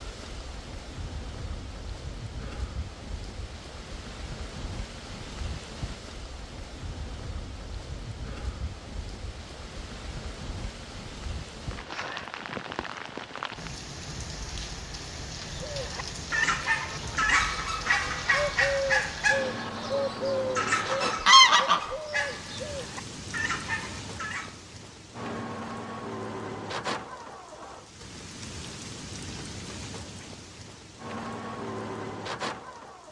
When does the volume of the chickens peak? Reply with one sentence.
The volume of the chickens peaks at 21 seconds.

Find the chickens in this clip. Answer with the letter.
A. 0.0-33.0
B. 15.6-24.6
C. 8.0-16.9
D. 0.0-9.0
B.